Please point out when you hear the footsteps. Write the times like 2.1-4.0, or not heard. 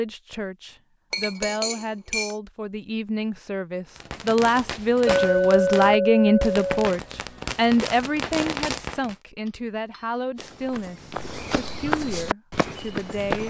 10.3-13.4.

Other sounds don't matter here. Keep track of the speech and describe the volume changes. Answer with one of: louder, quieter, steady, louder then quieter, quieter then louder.
louder then quieter.